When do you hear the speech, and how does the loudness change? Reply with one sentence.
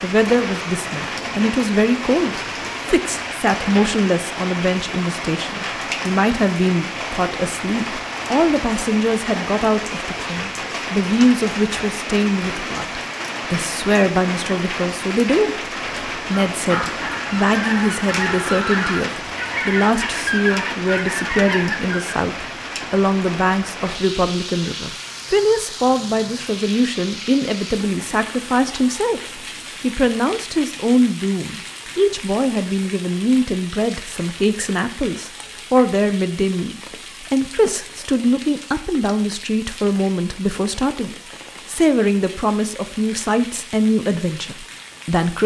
The speech can be heard from 0.0 to 45.4 s, at a steady volume.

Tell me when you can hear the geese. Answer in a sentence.
You can hear the geese from 16.6 to 22.1 s.